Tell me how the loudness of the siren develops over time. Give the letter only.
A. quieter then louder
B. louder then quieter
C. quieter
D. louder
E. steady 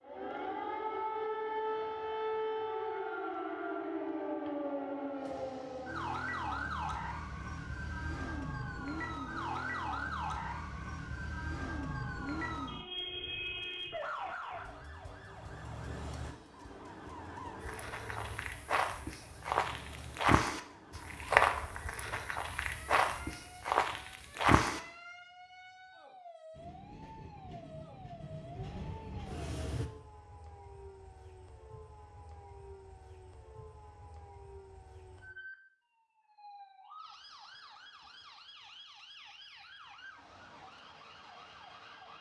C.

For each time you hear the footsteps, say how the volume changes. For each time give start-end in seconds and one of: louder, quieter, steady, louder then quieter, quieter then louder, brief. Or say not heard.
17.6-24.8 louder then quieter.